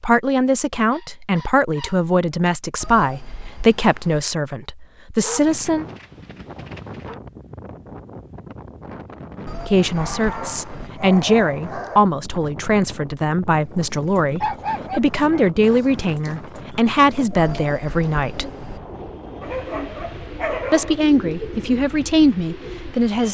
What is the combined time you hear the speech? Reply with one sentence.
The speech can be heard for 17 seconds in total.